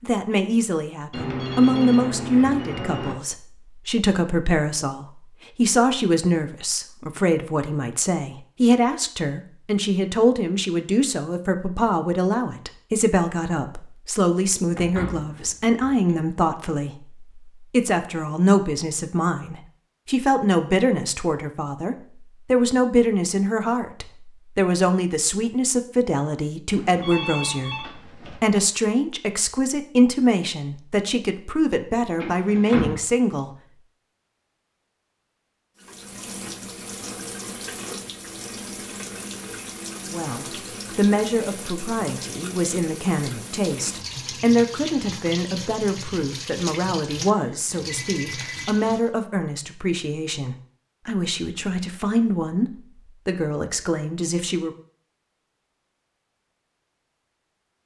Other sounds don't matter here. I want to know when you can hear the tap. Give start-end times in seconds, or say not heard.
35.8-49.1.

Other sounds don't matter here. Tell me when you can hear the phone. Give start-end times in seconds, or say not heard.
1.1-3.1, 26.6-28.4, 47.2-48.6.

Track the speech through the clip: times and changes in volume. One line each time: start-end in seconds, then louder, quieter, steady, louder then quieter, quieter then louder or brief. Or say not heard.
0.0-33.5 steady
40.1-54.7 steady.